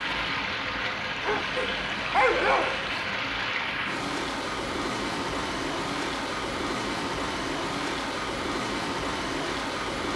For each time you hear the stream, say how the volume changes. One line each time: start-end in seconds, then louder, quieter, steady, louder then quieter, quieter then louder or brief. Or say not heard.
0.0-10.1 steady.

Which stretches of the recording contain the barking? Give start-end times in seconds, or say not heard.
1.2-3.2.